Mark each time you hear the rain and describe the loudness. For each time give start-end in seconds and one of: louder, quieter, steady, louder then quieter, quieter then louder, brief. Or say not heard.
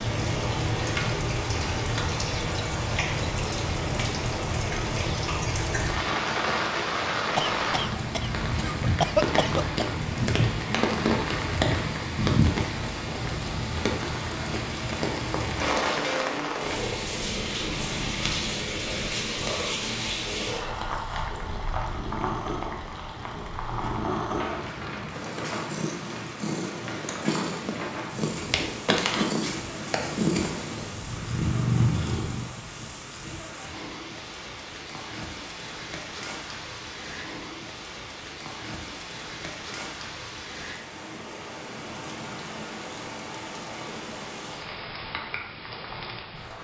0.0-46.5 quieter.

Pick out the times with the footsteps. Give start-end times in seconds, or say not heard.
not heard.